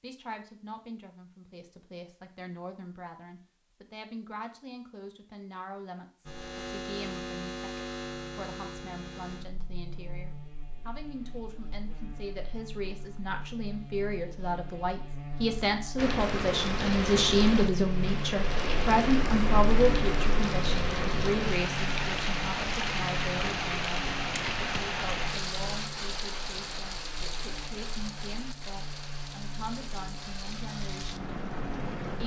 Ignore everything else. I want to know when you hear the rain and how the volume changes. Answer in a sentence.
You can hear the rain from 15.9 to 32.2 s, getting quieter.